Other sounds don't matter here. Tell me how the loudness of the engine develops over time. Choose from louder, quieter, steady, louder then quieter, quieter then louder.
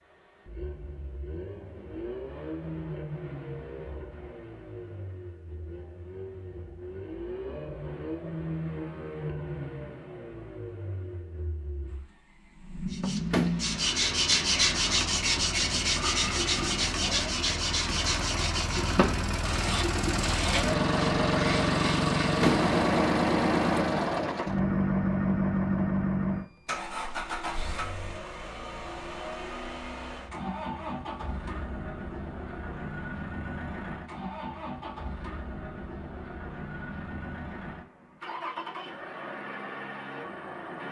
louder then quieter.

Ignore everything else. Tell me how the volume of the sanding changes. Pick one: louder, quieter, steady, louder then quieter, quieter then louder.
quieter.